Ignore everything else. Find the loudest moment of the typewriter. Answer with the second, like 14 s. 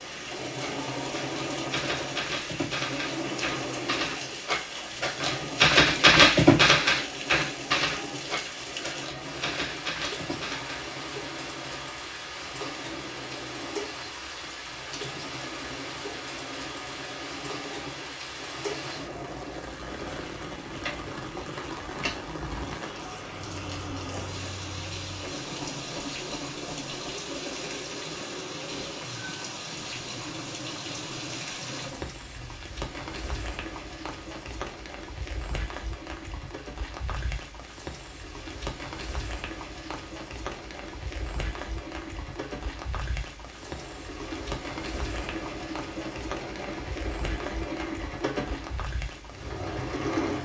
6 s.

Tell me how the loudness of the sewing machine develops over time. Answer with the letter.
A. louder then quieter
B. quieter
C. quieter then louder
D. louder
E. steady
C.